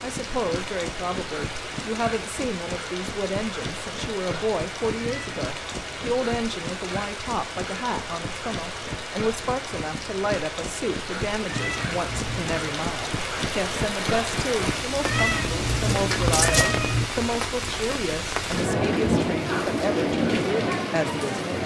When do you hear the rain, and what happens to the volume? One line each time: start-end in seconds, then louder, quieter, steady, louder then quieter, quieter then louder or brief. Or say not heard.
0.0-21.6 louder.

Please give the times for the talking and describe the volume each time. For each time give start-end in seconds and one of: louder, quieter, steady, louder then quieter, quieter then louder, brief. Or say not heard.
0.0-21.6 steady.